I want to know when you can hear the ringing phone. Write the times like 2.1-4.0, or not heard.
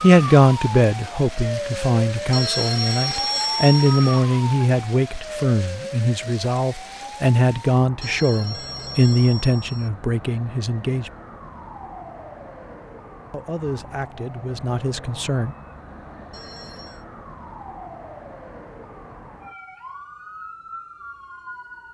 2.3-4.2, 8.0-9.9, 16.3-17.1.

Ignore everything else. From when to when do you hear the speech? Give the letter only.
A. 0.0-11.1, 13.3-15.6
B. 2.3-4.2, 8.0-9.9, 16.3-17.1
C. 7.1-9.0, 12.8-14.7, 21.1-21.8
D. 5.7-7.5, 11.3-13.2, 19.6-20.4
A.